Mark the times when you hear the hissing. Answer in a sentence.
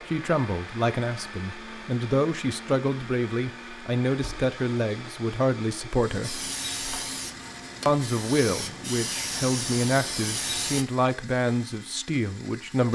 The hissing can be heard from 6.2 to 10.8 s.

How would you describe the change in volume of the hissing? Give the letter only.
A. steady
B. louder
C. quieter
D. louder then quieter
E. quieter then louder
E.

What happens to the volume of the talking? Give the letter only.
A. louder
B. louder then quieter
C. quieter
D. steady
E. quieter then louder
D.